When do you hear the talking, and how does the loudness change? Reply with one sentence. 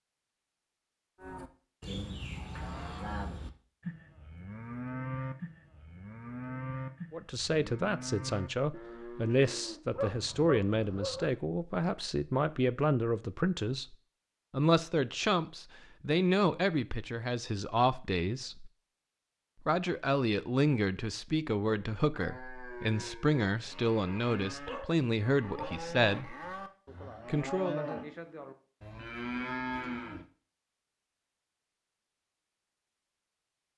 The talking can be heard from 7.1 to 18.7 s, at a steady volume; from 19.6 to 26.4 s, at a steady volume; and briefly from 27.2 to 27.8 s.